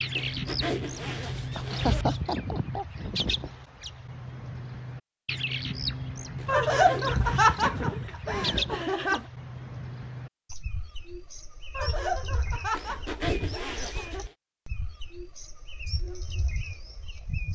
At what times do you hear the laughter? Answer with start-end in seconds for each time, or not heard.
1.6-3.0, 6.5-9.2, 11.8-14.2.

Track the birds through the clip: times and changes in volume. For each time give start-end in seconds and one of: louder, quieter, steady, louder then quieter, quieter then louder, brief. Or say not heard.
0.0-17.5 quieter.